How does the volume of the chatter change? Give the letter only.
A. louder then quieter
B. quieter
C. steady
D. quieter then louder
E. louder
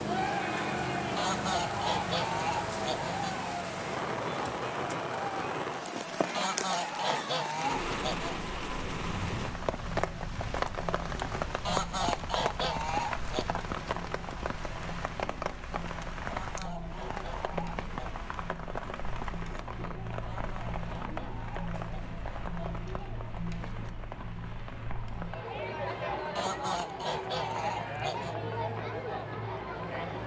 D.